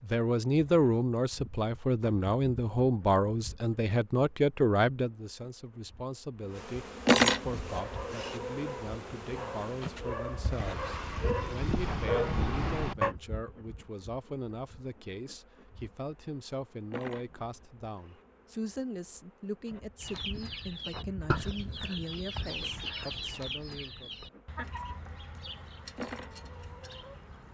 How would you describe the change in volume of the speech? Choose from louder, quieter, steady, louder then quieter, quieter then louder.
quieter.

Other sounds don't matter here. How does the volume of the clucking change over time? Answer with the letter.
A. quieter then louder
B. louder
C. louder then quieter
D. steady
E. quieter
E.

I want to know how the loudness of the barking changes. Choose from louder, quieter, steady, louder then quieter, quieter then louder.
louder.